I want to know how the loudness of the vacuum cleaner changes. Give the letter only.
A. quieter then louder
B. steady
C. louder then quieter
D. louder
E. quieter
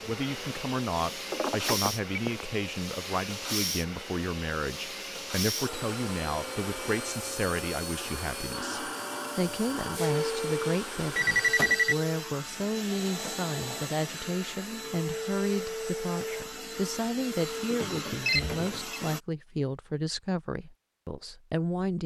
B.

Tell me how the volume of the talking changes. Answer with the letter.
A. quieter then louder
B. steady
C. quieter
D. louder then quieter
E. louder
B.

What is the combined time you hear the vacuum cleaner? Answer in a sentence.
The vacuum cleaner can be heard for 19 seconds in total.